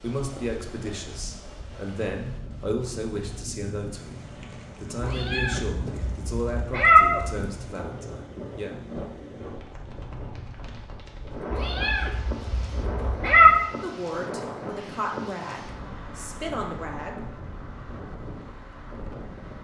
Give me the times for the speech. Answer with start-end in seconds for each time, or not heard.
0.0-4.2, 4.8-8.7, 13.8-17.1.